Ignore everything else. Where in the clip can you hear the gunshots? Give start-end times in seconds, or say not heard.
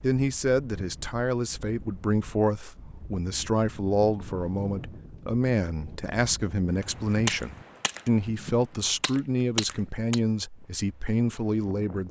7.2-10.2.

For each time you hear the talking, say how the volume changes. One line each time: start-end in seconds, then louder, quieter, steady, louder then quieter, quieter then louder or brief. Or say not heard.
0.0-12.0 steady.